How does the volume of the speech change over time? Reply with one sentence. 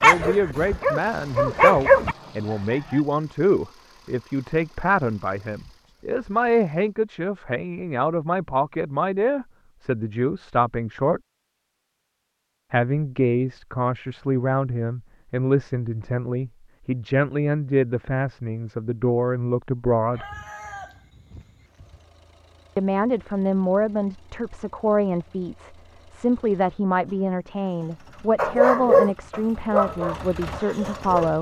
The volume of the speech stays about the same.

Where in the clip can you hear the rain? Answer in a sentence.
You can't hear the rain here.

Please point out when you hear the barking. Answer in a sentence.
You can hear the barking from 0.0 to 2.1 s and from 28.4 to 31.1 s.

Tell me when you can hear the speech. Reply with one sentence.
The speech can be heard from 0.0 to 11.2 s, from 12.7 to 20.2 s and from 22.8 to 31.3 s.